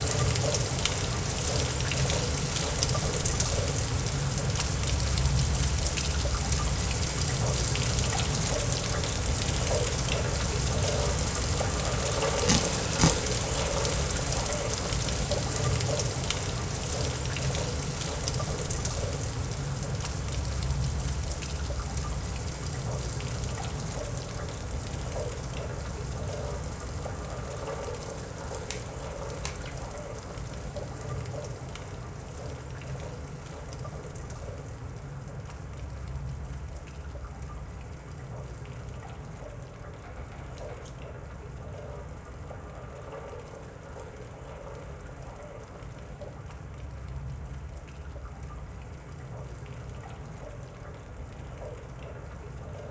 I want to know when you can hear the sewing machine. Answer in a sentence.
You can't hear the sewing machine here.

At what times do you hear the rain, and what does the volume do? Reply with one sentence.
The rain can be heard from 0.0 to 52.8 s, getting quieter.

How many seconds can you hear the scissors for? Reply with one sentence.
You can hear the scissors for 3 seconds altogether.